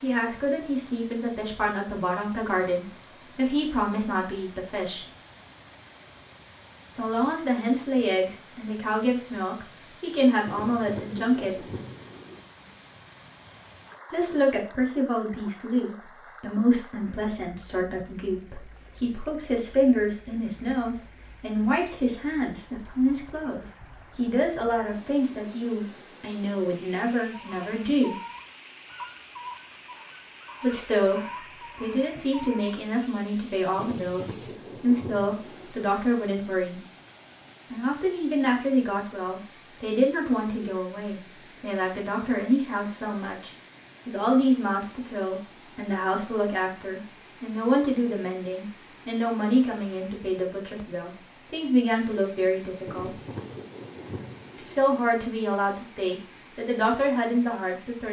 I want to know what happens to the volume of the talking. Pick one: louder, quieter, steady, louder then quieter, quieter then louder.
steady.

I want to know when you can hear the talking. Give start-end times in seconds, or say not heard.
0.0-5.0, 7.0-11.8, 14.1-28.1, 30.6-36.8, 37.7-53.2, 54.5-58.0.